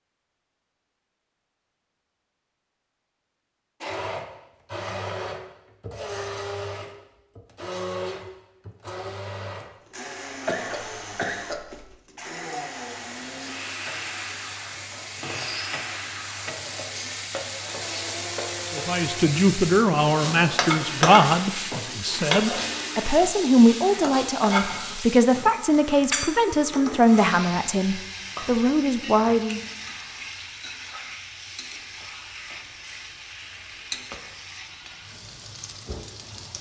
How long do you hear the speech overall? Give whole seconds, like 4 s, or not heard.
11 s.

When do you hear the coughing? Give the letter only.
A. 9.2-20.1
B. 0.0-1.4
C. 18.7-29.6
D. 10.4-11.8
D.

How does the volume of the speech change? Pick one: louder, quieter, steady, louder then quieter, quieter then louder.
steady.